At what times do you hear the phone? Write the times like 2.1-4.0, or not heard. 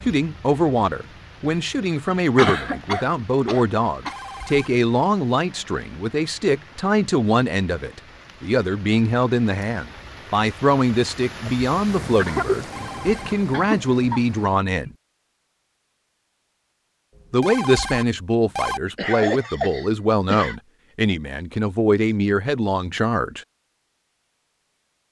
4.0-4.7, 12.6-13.4, 17.1-18.8.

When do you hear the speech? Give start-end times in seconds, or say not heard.
0.0-14.9, 17.3-23.4.